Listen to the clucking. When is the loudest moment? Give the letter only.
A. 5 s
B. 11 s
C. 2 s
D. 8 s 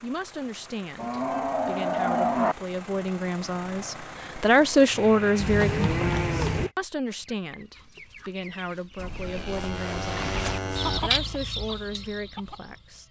B.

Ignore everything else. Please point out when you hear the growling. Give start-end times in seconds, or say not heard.
not heard.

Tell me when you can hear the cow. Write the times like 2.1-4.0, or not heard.
0.9-2.5, 5.4-6.7, 8.9-11.0.